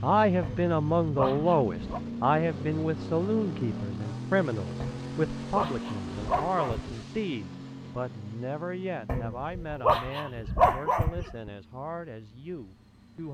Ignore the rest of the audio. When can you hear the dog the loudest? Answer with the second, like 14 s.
11 s.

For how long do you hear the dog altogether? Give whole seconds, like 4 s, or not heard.
6 s.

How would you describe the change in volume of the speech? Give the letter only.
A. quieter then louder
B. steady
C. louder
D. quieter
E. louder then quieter
D.